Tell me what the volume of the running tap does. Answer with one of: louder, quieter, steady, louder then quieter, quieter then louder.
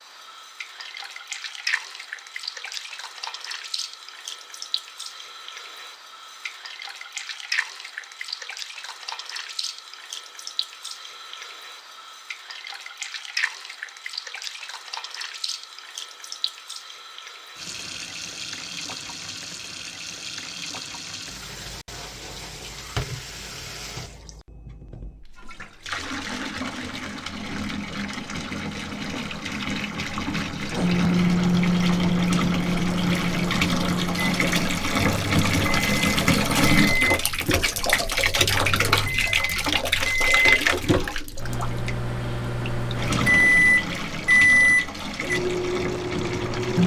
louder.